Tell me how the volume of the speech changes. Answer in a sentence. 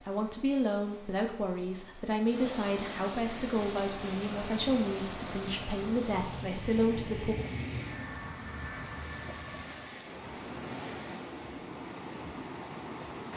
The loudness of the speech stays about the same.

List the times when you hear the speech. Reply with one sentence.
The speech can be heard from 0.0 to 7.3 s.